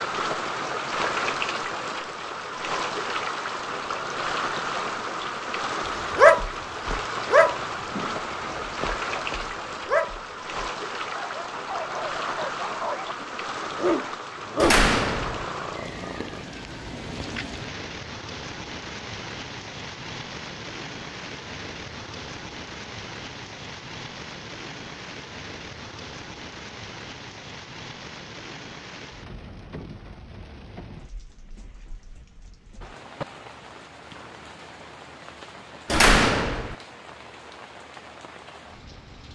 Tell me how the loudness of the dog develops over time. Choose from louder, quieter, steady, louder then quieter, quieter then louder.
quieter then louder.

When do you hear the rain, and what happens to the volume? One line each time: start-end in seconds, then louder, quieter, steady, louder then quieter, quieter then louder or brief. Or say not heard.
0.0-39.2 quieter.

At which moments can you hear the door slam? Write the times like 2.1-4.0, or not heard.
14.6-15.4, 35.9-36.8.